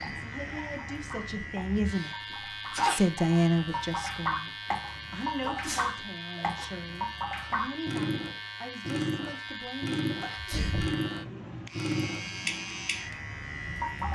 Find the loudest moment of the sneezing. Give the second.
3 s.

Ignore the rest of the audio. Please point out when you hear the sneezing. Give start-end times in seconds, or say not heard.
1.9-3.1, 5.4-6.7, 10.2-11.0.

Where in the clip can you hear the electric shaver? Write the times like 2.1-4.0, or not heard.
0.0-14.1.